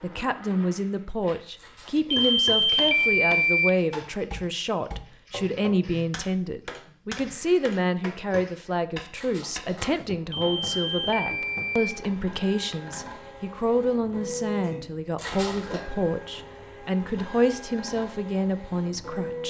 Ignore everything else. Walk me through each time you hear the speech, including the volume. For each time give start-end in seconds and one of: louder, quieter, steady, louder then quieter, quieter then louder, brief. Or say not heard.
0.0-19.4 steady.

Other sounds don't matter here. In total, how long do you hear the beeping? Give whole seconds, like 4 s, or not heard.
3 s.